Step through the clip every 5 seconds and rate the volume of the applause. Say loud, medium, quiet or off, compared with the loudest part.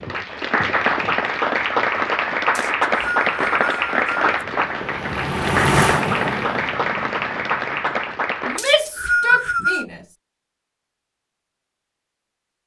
loud, loud, off.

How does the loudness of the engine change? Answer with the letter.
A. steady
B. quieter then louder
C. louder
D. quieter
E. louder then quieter
E.